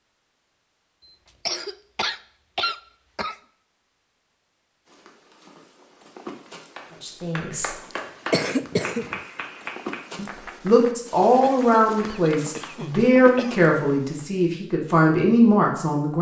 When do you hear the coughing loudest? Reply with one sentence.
The loudest moment of the coughing is at 8 seconds.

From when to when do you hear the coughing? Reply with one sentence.
The coughing can be heard from 1.4 to 3.4 s, from 7.9 to 9.2 s and from 11.4 to 13.7 s.